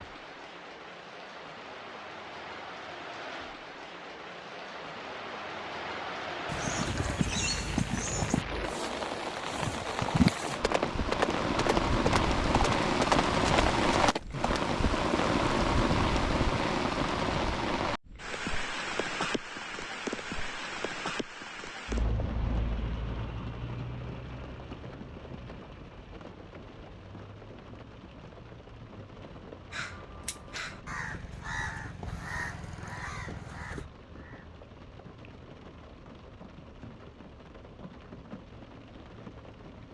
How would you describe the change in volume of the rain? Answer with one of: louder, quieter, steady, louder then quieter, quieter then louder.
louder then quieter.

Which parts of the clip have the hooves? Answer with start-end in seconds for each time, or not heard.
6.5-14.7.